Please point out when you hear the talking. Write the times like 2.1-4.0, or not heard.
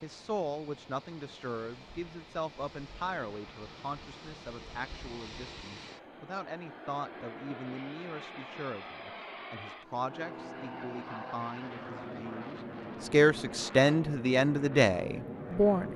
0.0-15.9.